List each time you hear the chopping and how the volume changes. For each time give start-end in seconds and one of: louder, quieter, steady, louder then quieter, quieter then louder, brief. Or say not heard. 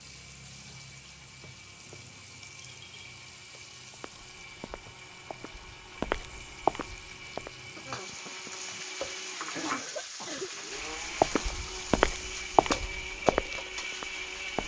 not heard.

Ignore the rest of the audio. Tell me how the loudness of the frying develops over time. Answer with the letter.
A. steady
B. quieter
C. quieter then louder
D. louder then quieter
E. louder
E.